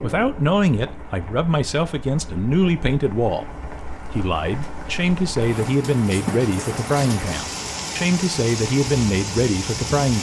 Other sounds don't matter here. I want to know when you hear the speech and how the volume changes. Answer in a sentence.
You can hear the speech from 0.0 to 10.1 s, at a steady volume.